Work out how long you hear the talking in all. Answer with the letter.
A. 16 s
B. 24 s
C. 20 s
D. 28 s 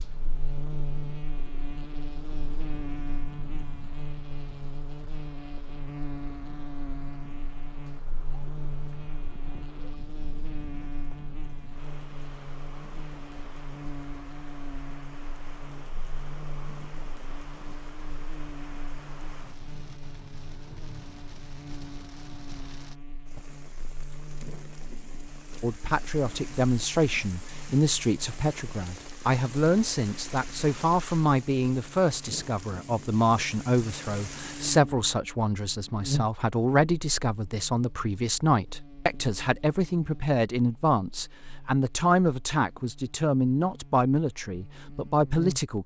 C.